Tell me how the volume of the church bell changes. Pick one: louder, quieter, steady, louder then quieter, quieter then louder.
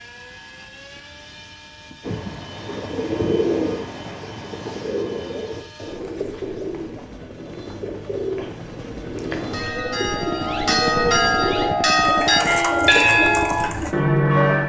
louder.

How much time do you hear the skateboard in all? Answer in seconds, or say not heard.
not heard.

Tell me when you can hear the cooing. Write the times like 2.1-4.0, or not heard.
2.0-13.9.